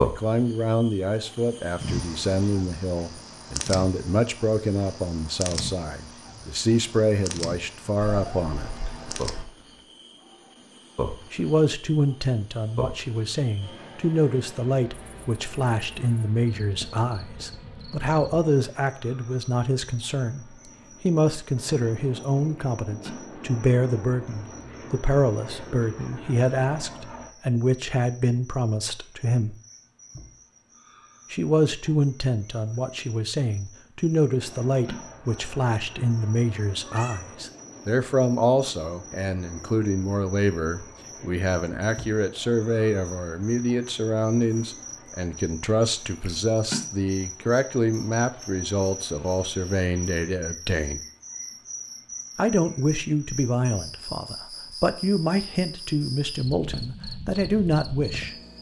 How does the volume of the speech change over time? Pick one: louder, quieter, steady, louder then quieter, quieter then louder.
steady.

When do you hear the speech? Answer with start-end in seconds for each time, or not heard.
0.0-8.7, 11.3-29.6, 31.3-51.0, 52.4-58.3.